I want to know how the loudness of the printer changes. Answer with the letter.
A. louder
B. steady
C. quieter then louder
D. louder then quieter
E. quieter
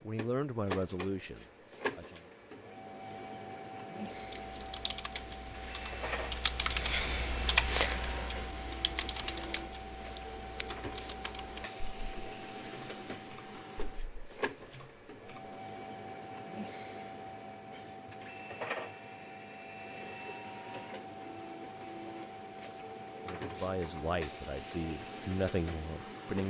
B.